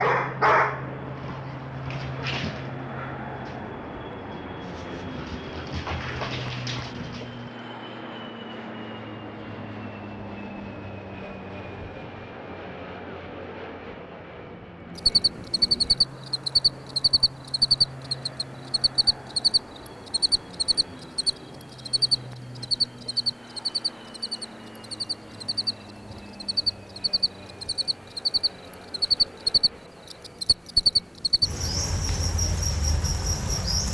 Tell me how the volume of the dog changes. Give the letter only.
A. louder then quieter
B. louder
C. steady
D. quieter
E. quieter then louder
E.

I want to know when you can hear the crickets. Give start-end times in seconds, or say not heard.
14.9-33.8.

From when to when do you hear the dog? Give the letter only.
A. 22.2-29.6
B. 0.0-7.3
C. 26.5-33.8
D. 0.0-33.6
B.